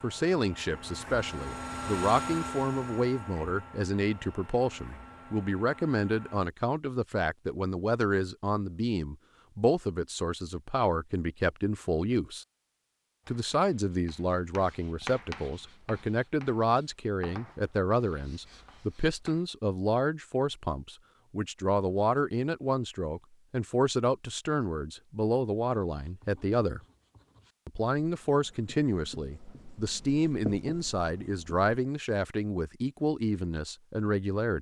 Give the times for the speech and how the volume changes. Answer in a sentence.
You can hear the speech from 0.0 to 12.4 s, at a steady volume; from 13.2 to 26.8 s, at a steady volume; and from 27.6 to 34.5 s, at a steady volume.